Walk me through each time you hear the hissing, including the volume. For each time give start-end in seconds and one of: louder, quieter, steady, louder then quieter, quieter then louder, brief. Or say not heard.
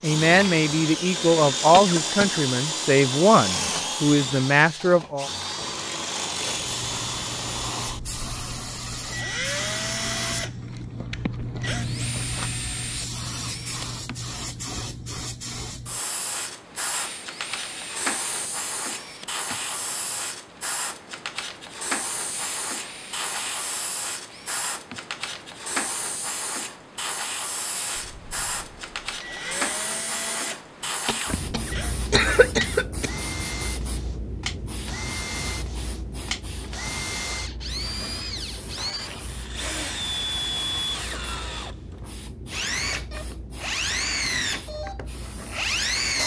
6.3-46.2 quieter.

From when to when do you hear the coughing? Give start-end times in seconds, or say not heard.
1.7-2.4, 31.1-33.1.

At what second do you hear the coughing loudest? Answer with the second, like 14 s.
32 s.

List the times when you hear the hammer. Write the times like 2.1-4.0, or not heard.
not heard.